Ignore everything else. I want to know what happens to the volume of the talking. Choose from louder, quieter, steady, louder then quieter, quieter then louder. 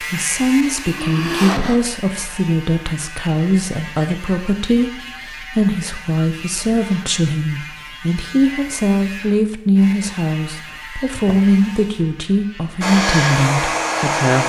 steady.